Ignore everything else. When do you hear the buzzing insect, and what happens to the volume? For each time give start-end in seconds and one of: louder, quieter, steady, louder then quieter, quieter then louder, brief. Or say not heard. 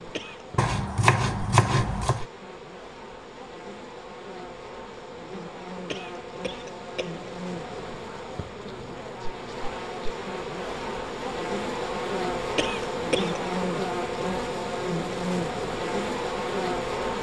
0.0-17.1 louder.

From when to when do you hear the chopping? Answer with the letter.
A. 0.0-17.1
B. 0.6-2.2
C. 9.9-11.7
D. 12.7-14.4
B.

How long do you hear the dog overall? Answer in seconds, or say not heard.
not heard.